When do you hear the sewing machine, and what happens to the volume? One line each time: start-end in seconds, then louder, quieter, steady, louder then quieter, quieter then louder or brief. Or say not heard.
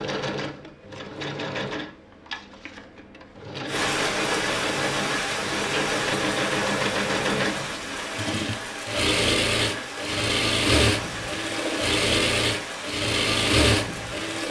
0.0-14.4 louder.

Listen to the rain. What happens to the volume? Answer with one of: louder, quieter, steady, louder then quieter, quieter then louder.
quieter.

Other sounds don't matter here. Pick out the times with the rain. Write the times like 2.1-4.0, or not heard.
3.6-14.4.